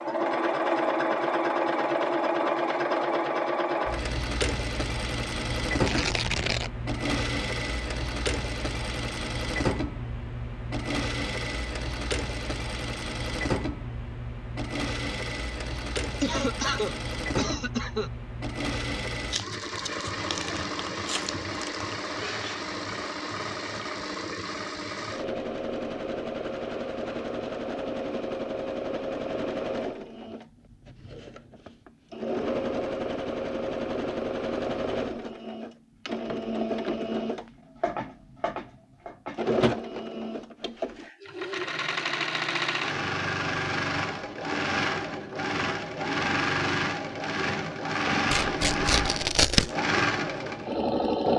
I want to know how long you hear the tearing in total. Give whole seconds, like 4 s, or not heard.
5 s.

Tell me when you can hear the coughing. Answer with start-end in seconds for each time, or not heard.
16.2-18.1.